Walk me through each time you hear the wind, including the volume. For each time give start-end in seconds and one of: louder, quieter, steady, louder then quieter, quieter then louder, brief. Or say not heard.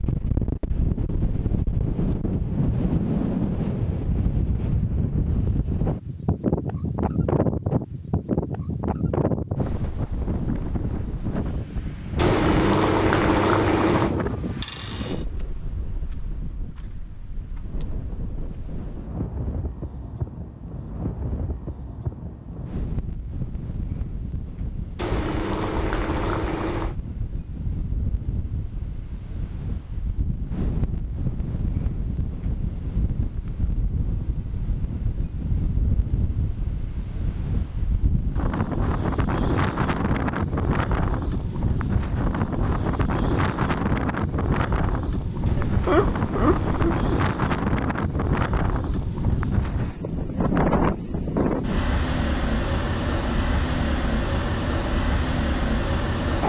0.0-56.4 quieter then louder.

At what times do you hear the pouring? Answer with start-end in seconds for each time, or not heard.
12.2-14.2, 24.9-26.9, 45.5-47.3.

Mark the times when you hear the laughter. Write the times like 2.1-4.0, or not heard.
45.5-47.0.